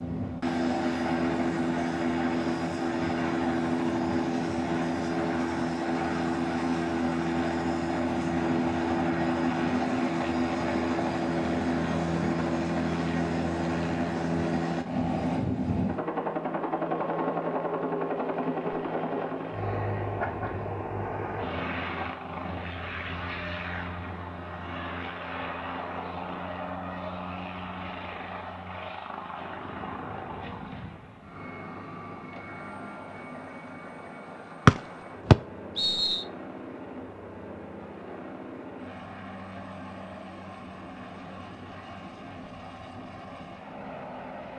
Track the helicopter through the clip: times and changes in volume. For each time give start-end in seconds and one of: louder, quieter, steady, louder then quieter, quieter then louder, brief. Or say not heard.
0.0-44.5 quieter.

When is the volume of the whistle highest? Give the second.
35 s.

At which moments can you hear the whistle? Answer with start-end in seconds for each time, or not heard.
34.6-36.2.